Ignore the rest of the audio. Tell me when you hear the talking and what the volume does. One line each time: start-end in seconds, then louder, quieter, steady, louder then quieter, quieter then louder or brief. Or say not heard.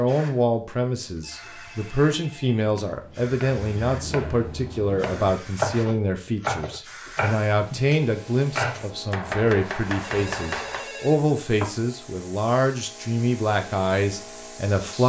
0.0-15.0 steady.